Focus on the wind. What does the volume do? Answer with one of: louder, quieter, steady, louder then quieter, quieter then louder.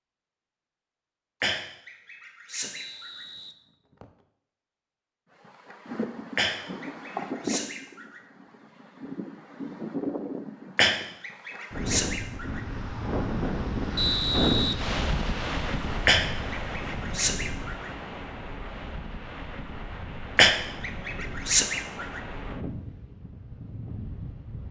louder then quieter.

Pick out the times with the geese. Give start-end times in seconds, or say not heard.
1.4-3.2, 6.3-8.2, 10.8-12.6, 16.1-17.9, 20.4-22.2.